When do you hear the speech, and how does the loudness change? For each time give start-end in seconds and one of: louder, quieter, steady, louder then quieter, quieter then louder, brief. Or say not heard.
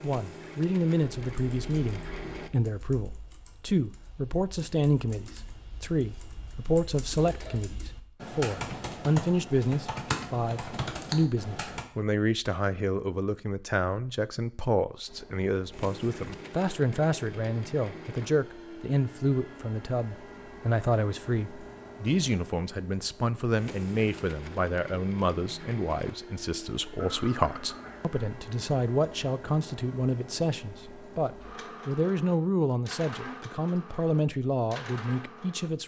0.0-35.8 steady.